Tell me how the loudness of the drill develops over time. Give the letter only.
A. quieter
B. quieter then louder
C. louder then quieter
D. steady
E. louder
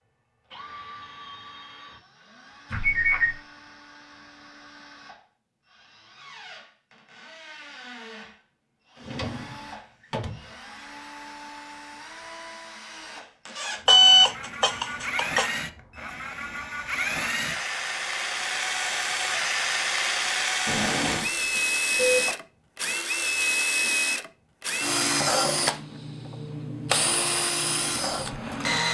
E.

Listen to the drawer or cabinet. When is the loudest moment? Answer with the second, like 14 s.
21 s.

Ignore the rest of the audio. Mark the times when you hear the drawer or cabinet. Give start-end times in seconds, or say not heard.
9.0-10.4, 20.6-21.3.